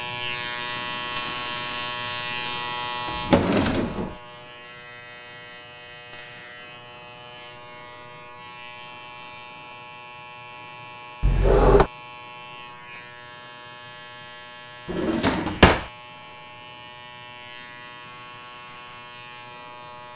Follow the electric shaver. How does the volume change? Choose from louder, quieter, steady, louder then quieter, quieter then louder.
quieter.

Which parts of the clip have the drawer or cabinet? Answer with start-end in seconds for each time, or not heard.
3.0-4.2, 11.2-11.9, 14.8-15.9.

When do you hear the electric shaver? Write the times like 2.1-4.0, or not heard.
0.0-20.1.